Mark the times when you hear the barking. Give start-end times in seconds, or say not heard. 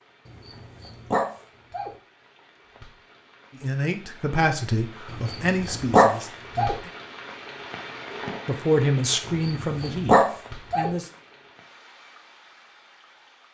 0.2-1.9, 5.1-6.8, 9.2-10.9.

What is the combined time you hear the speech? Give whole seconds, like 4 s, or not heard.
6 s.